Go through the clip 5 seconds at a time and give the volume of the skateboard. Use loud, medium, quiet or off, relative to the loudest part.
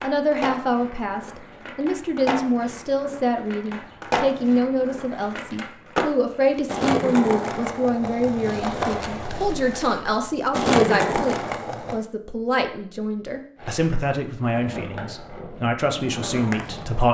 medium, loud, loud, medium.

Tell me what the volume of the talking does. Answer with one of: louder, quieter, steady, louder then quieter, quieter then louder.
steady.